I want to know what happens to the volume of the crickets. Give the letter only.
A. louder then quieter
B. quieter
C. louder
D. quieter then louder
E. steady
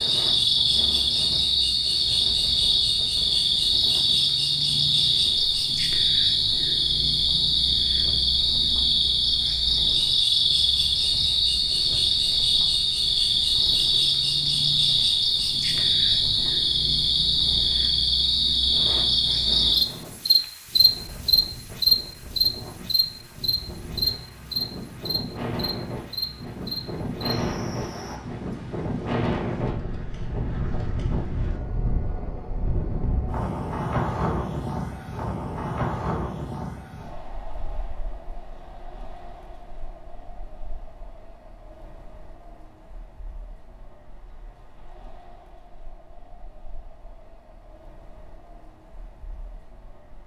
B.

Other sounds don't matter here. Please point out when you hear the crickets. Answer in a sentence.
You can hear the crickets from 0.0 to 28.2 s.